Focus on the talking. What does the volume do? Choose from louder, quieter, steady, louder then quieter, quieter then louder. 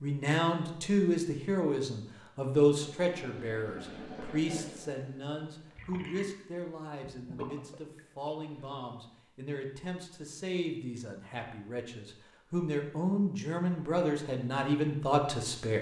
quieter then louder.